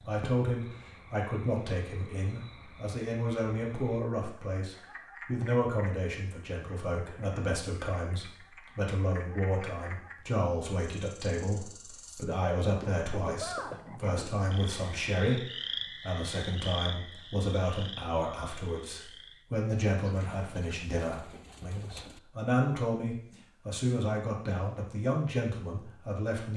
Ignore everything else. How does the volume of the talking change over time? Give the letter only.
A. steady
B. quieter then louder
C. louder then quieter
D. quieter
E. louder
A.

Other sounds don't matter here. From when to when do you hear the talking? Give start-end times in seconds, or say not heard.
0.0-26.5.